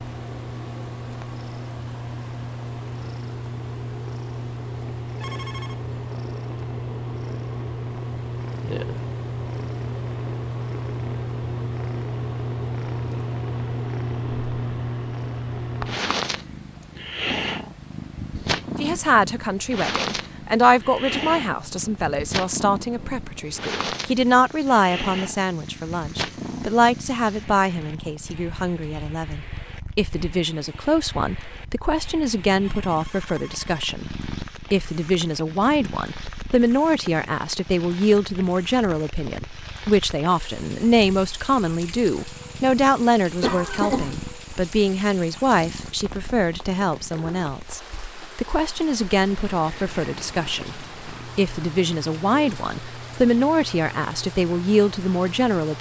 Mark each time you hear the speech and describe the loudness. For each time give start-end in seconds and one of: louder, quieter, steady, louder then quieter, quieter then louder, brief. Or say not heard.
18.8-55.7 steady.